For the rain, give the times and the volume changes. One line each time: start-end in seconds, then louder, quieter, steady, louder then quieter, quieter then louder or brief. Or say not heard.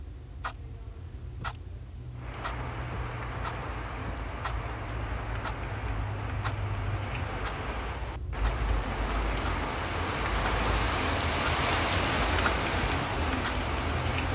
2.1-14.3 louder.